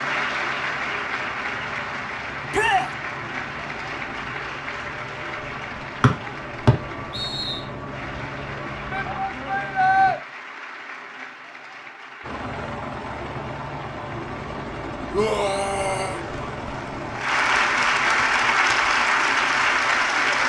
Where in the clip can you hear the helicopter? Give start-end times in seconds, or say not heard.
0.0-10.2, 12.2-18.2.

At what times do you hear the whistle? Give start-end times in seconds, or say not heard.
6.0-7.6.